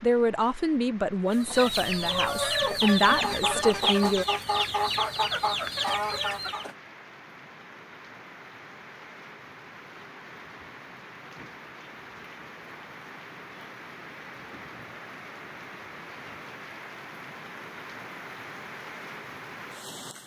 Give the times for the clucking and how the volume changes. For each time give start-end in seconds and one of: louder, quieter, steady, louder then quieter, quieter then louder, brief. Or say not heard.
1.2-6.8 steady.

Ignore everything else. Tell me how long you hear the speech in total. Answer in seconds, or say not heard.
4 s.